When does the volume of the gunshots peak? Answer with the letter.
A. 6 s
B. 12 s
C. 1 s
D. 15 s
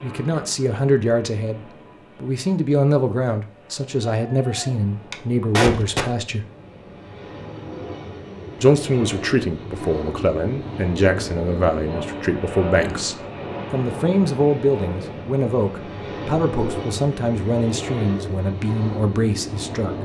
A.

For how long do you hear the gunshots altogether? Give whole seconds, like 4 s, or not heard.
2 s.